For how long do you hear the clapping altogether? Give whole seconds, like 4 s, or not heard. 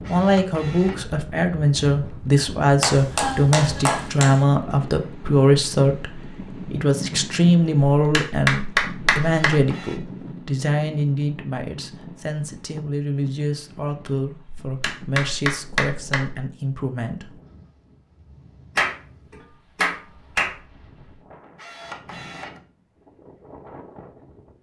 7 s.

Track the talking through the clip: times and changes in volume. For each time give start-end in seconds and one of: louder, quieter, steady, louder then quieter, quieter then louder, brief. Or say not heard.
0.1-17.4 quieter.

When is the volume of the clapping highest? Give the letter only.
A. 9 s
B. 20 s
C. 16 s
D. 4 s
A.